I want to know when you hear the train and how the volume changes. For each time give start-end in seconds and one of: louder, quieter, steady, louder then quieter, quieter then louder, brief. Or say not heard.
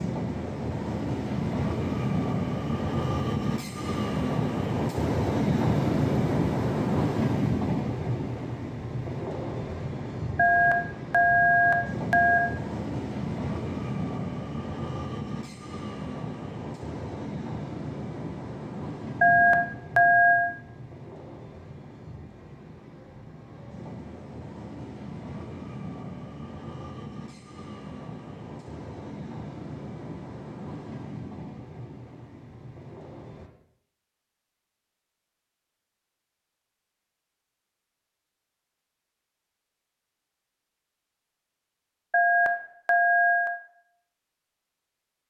0.0-33.5 quieter.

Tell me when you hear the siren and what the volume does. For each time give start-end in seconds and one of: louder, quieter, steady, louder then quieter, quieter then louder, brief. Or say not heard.
not heard.